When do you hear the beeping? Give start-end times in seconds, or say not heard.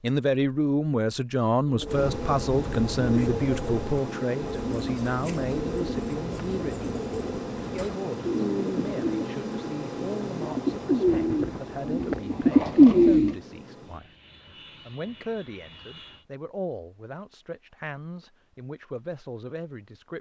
not heard.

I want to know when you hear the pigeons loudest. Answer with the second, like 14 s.
13 s.